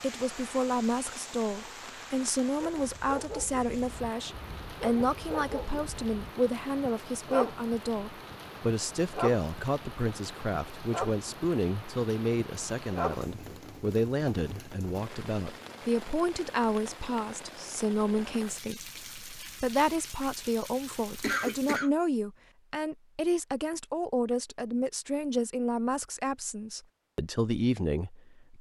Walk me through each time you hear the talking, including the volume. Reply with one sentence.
You can hear the talking from 0.0 to 28.5 s, at a steady volume.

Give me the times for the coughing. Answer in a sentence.
The coughing can be heard from 21.2 to 21.9 s.